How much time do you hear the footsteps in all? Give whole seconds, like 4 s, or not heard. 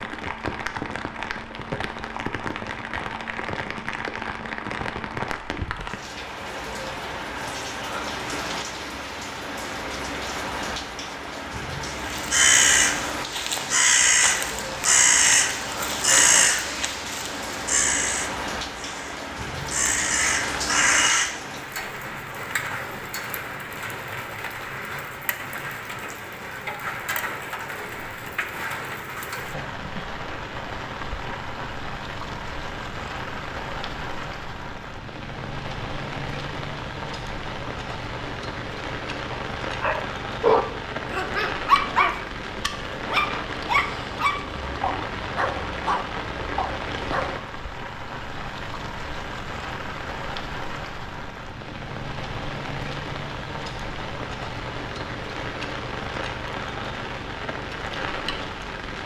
not heard.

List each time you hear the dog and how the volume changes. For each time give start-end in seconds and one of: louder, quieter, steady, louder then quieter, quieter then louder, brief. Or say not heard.
39.3-47.5 quieter.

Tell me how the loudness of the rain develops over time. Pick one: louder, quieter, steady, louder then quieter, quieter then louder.
steady.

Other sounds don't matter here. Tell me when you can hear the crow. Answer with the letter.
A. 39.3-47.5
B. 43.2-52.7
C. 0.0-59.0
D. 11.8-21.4
D.